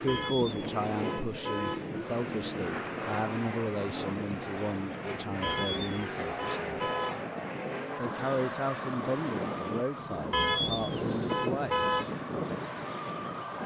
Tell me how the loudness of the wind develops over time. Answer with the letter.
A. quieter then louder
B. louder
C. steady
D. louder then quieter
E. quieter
B.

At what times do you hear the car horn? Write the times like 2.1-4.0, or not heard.
0.1-1.9, 5.4-7.2, 10.3-12.2.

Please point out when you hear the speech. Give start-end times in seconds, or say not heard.
0.0-6.8, 8.0-11.8.